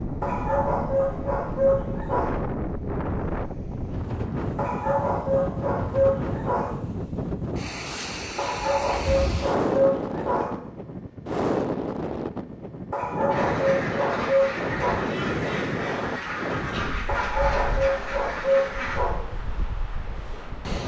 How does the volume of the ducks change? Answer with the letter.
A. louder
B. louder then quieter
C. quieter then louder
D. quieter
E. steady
E.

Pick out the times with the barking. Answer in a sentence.
The barking can be heard from 0.2 to 2.4 s, from 4.5 to 6.7 s, from 8.3 to 10.5 s, from 12.9 to 15.1 s and from 17.1 to 19.1 s.